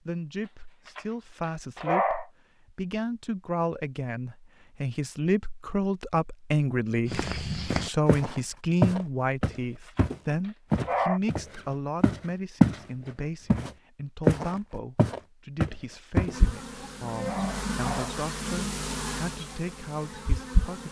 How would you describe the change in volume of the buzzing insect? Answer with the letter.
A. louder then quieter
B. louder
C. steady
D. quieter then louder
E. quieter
E.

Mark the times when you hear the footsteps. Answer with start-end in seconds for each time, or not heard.
7.0-12.8, 13.5-16.4.